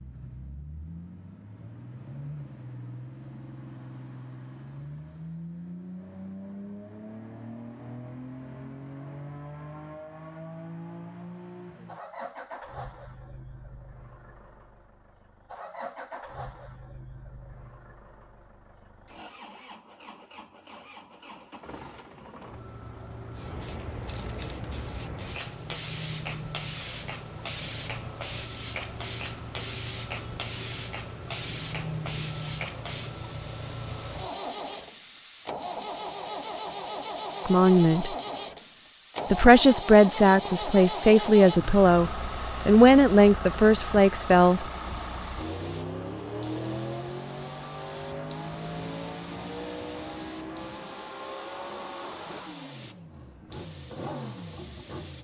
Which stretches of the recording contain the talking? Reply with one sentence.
The talking can be heard from 37.5 to 38.1 s and from 39.3 to 44.6 s.